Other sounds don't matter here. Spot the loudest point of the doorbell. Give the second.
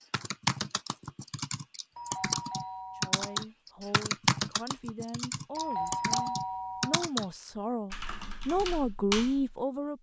6 s.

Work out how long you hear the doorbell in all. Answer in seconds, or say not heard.
3 s.